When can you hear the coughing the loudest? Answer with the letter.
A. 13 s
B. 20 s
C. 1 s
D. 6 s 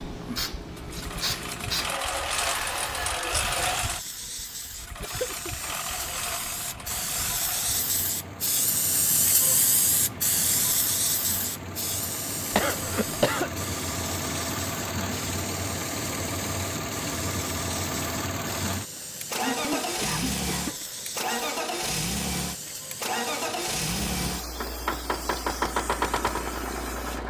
A.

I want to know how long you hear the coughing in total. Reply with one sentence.
The coughing can be heard for 3 seconds in total.